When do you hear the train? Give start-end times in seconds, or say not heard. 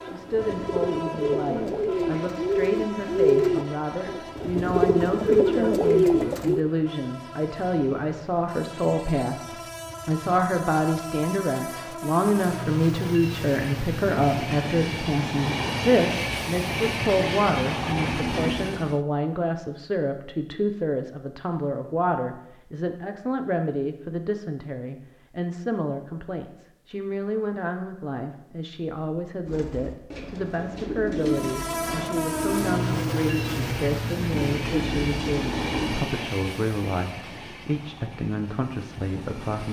0.0-19.0, 31.2-39.6.